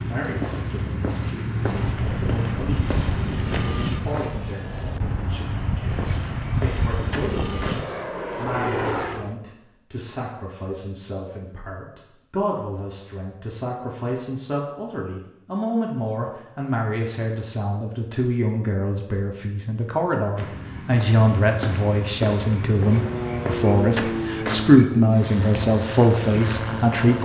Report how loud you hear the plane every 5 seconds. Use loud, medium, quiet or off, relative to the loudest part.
loud, loud, off, off, loud, loud.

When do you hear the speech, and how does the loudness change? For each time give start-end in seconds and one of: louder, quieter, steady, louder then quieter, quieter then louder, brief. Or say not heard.
0.0-27.2 louder.